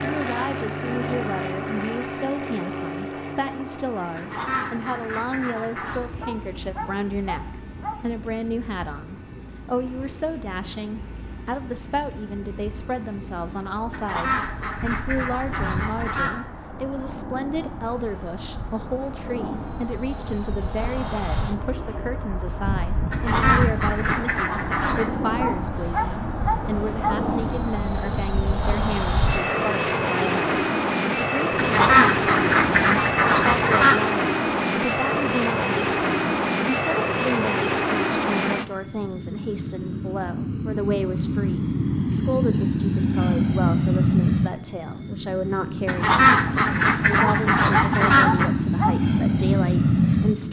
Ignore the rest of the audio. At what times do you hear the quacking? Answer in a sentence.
The quacking can be heard from 4.2 to 6.0 s, from 13.9 to 16.4 s, from 23.1 to 25.1 s, from 31.6 to 34.0 s and from 45.9 to 48.5 s.